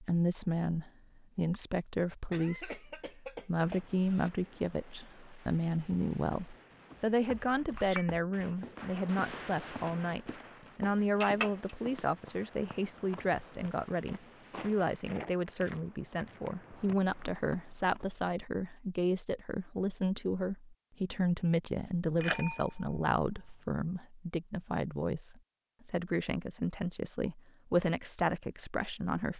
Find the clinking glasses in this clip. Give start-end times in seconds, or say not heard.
7.5-8.1, 11.2-11.7, 22.2-23.6.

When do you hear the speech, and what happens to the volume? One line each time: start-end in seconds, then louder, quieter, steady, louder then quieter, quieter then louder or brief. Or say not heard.
0.0-29.3 steady.